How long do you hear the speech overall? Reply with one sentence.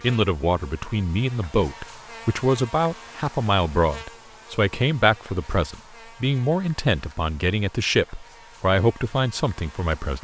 You can hear the speech for 10 seconds altogether.